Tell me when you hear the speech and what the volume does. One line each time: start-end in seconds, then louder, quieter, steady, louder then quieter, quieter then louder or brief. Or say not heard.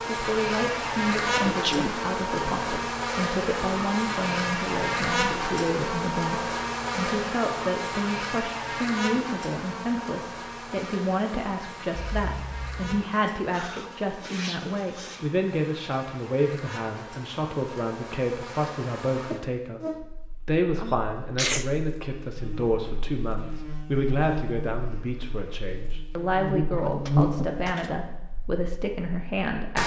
0.1-29.8 steady.